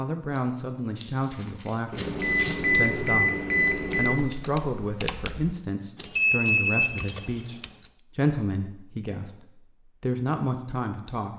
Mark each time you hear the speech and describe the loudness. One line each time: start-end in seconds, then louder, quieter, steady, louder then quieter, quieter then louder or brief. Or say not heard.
0.0-11.3 steady.